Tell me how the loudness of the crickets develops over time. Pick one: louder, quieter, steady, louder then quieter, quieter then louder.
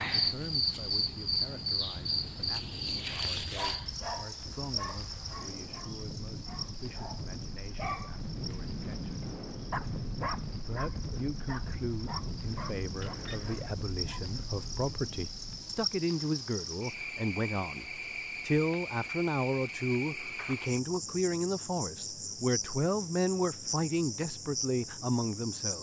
quieter then louder.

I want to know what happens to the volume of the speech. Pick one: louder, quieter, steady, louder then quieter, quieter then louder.
louder.